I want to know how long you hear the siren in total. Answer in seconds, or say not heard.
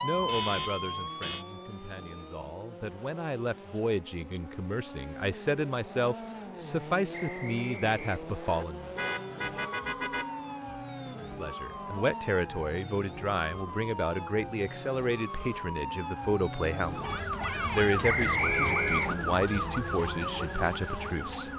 15 s.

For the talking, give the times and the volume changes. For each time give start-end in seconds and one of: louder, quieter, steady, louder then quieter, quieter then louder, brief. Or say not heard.
0.0-8.9 louder
11.2-21.5 steady.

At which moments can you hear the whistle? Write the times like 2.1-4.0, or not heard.
7.1-8.7, 18.0-19.2.